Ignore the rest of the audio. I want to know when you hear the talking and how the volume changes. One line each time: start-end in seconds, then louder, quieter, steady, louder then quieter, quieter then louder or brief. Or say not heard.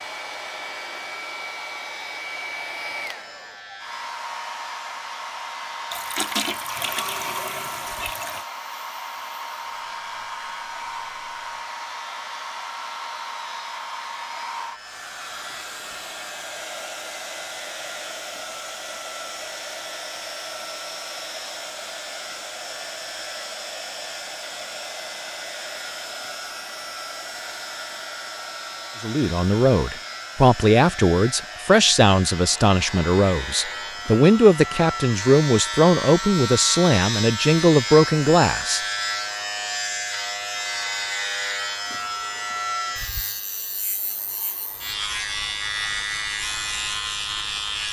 29.0-38.8 steady.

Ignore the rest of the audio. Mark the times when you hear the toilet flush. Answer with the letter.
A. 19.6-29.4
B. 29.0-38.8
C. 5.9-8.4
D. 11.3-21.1
C.